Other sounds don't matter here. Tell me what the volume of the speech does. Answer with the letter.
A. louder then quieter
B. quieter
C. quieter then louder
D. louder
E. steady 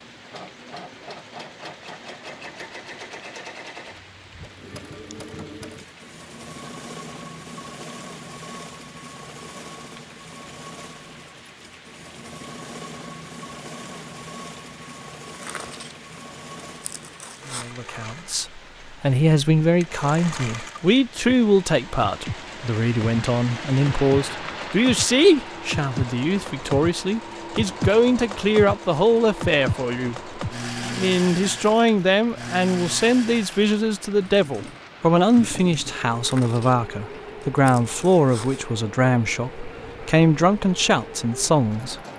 E.